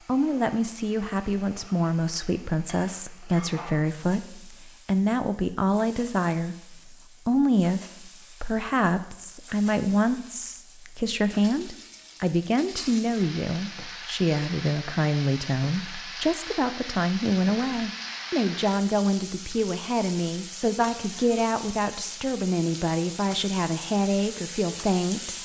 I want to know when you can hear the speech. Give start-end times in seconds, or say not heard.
0.1-7.8, 8.4-25.4.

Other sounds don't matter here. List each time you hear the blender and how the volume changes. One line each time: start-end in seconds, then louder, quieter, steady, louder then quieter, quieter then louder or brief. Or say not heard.
not heard.